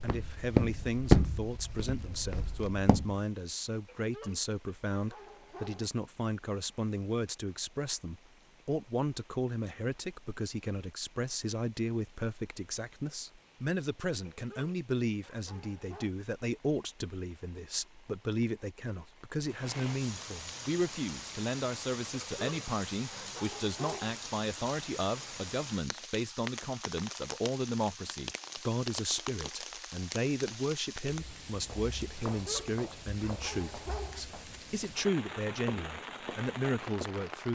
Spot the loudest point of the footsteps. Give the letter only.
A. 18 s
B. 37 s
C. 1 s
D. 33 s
C.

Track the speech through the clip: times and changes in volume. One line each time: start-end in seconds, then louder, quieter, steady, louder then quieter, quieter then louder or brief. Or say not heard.
0.0-37.5 steady.